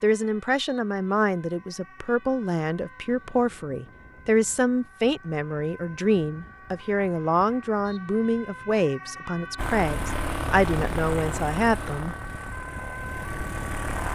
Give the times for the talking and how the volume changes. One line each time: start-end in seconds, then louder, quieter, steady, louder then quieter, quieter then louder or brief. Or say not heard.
0.0-12.2 steady.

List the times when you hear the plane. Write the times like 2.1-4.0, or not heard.
9.6-14.1.